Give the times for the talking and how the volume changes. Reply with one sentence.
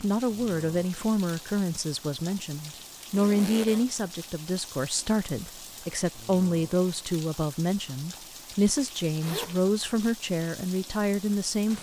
You can hear the talking from 0.0 to 11.7 s, at a steady volume.